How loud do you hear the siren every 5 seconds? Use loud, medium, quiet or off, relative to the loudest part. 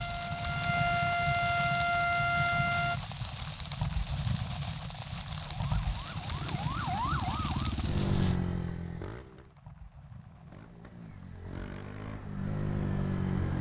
loud, medium, off.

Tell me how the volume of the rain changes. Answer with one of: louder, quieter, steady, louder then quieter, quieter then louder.
quieter.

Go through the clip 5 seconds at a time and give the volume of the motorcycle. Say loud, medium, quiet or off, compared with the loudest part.
off, loud, loud.